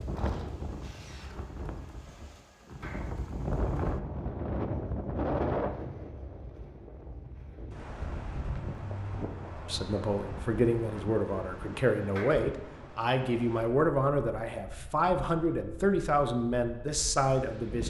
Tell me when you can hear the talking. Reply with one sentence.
You can hear the talking from 9.7 to 17.8 s.